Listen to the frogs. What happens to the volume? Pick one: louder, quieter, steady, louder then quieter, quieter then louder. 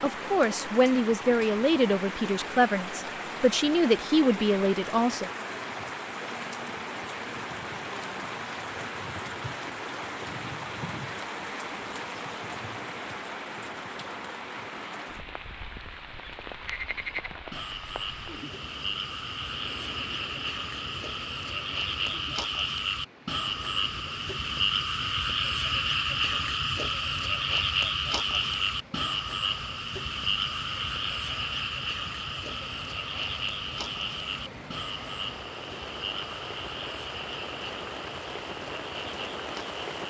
louder then quieter.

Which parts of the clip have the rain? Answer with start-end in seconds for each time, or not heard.
0.0-40.0.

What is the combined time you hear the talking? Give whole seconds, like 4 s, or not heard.
5 s.